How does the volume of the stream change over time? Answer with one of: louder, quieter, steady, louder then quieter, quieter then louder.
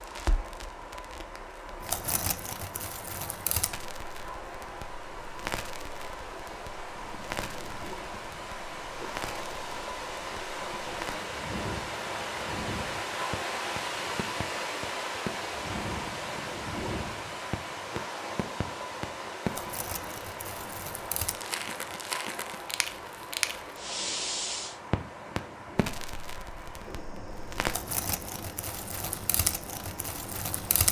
louder then quieter.